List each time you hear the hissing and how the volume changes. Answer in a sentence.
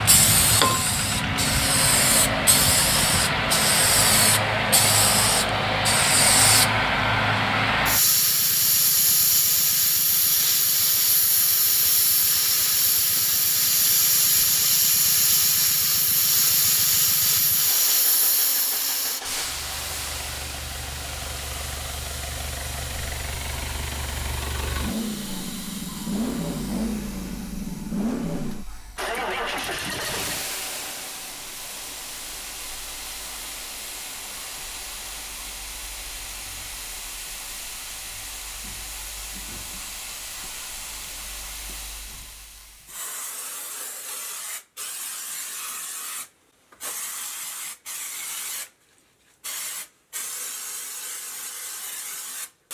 The hissing can be heard from 0.0 to 52.7 s, getting quieter.